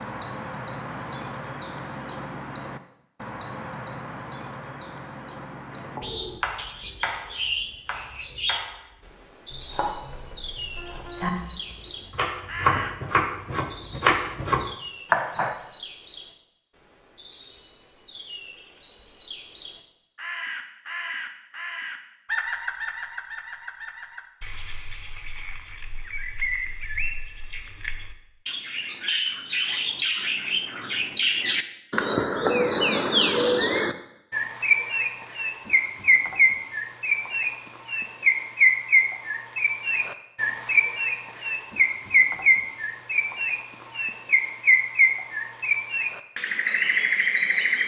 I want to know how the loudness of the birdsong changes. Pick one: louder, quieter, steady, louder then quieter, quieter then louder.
quieter then louder.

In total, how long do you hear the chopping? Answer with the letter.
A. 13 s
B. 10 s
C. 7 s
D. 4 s
B.